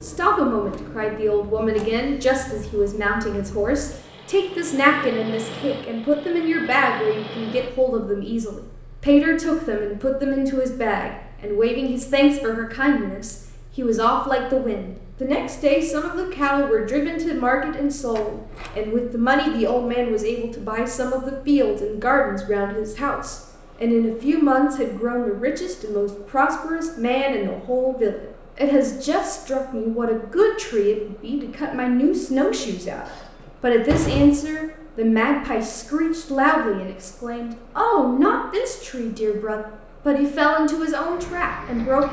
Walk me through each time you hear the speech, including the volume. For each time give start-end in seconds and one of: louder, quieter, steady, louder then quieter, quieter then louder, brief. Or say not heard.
0.0-42.0 steady.